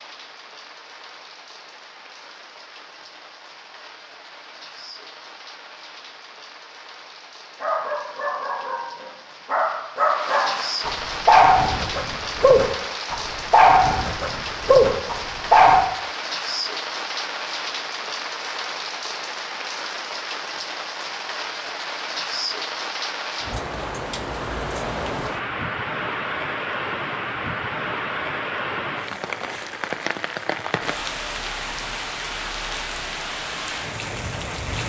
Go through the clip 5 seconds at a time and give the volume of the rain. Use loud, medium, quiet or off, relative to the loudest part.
quiet, quiet, loud, loud, loud, loud, loud.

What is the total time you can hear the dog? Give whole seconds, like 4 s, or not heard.
8 s.